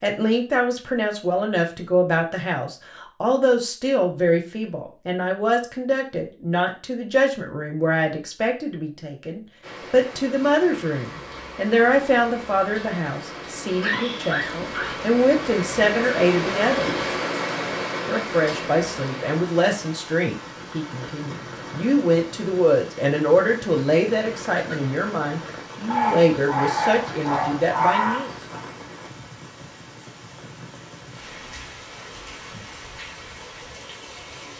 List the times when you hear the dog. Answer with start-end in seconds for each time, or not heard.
13.7-14.9, 25.9-28.6.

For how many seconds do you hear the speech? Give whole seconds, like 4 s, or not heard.
27 s.